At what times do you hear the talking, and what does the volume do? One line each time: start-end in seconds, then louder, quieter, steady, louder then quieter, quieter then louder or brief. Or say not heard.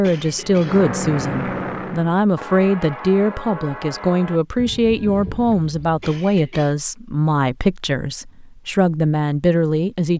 0.0-10.1 steady.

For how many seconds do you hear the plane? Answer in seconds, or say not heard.
2 s.